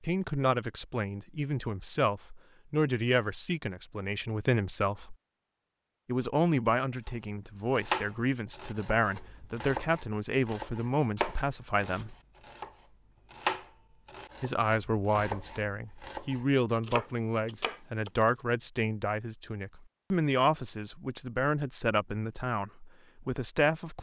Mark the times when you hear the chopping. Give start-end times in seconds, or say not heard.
7.0-18.4.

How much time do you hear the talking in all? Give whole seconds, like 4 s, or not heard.
21 s.